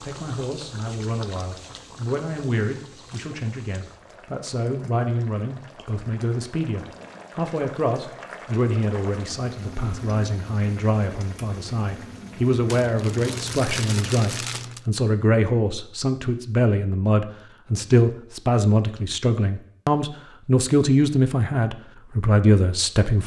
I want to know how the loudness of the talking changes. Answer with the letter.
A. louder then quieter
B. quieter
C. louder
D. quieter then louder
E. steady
C.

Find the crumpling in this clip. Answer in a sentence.
The crumpling can be heard from 12.7 to 14.8 s.